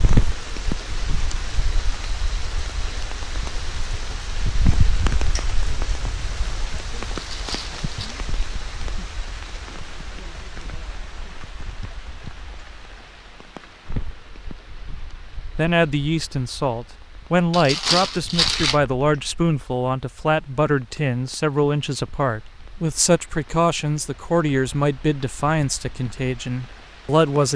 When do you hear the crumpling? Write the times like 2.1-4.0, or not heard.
7.2-8.1, 17.5-18.8.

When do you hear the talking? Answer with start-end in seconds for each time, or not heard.
15.6-27.5.